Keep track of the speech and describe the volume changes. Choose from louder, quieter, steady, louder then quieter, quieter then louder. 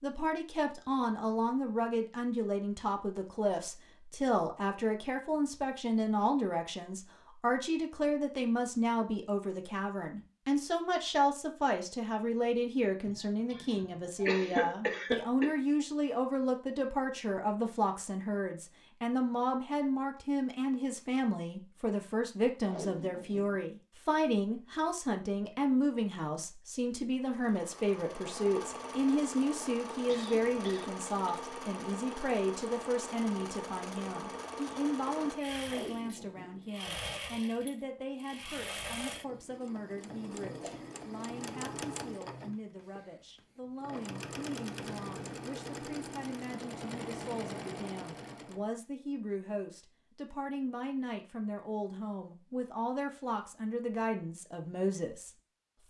quieter.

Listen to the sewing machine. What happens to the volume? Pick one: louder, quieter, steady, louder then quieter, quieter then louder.
steady.